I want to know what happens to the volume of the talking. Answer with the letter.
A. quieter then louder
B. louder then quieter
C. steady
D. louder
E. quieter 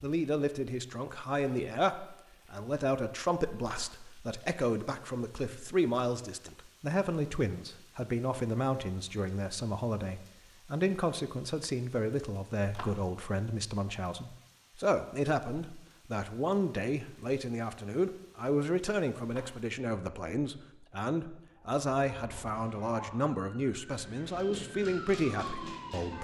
C.